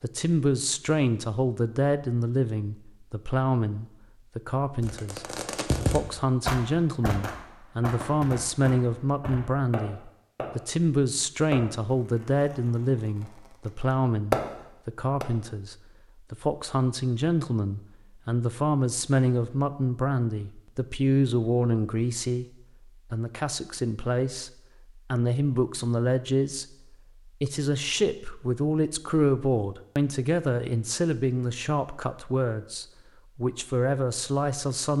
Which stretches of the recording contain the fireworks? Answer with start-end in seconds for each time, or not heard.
4.8-10.6, 11.5-14.4.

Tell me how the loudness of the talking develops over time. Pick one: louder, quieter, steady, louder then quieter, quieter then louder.
steady.